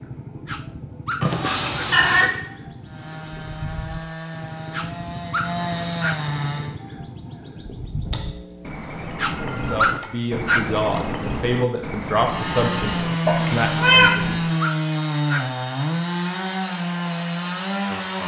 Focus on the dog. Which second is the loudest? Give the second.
10 s.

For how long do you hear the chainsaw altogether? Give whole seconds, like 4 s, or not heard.
10 s.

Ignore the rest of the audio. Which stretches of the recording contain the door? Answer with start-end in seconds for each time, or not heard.
not heard.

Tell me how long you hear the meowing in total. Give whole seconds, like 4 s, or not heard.
4 s.